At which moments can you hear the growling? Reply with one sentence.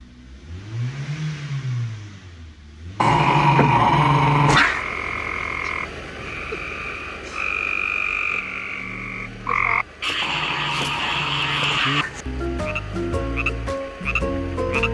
You can hear the growling from 3.0 to 4.8 s and from 10.2 to 12.2 s.